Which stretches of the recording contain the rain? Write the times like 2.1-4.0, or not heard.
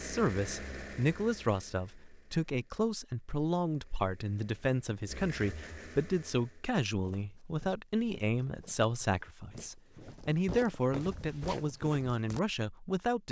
not heard.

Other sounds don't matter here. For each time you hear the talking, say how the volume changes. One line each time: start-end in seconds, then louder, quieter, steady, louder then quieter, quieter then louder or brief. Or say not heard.
0.0-13.2 steady.